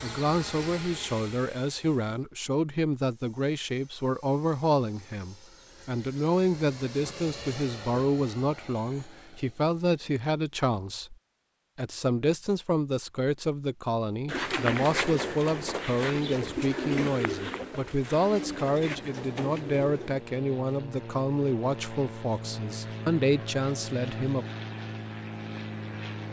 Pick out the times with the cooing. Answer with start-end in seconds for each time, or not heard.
14.2-20.2.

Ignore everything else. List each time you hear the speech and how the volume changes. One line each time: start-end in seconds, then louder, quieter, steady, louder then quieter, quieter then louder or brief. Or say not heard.
0.0-11.2 steady
11.8-24.4 steady.